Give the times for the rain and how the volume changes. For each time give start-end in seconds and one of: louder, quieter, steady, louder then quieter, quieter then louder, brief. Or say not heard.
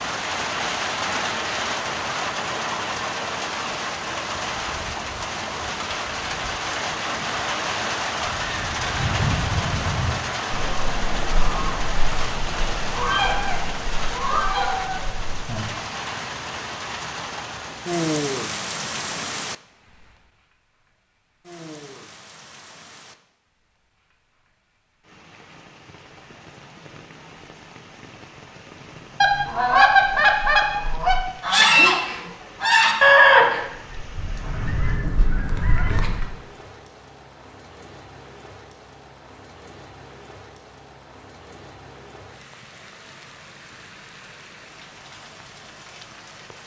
0.0-46.6 quieter.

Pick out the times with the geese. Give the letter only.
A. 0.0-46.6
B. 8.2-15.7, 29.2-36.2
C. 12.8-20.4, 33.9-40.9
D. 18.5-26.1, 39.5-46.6
B.